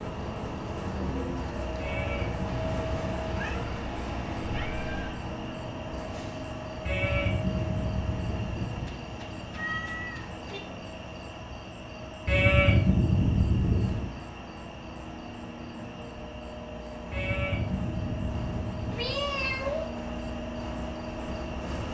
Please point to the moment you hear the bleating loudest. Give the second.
13 s.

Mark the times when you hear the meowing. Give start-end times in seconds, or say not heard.
2.6-5.2, 8.7-10.6, 18.9-19.9.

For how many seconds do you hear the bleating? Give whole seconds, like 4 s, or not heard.
8 s.